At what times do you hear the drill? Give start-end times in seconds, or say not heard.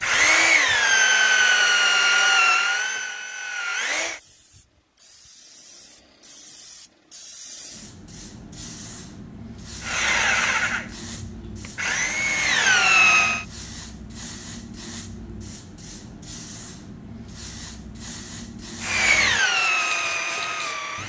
0.0-4.2, 9.8-13.4, 18.8-21.0.